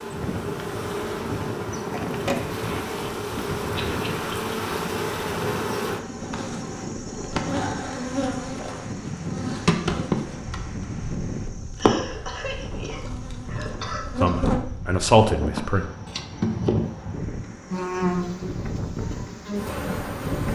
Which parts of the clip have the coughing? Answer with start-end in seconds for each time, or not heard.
3.8-4.2, 11.8-14.4.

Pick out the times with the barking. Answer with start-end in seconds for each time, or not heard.
not heard.